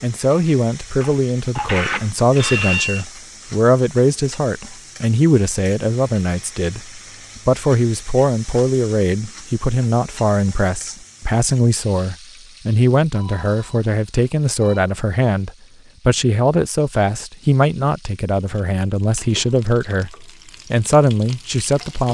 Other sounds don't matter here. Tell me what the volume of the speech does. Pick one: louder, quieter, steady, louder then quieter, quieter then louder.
steady.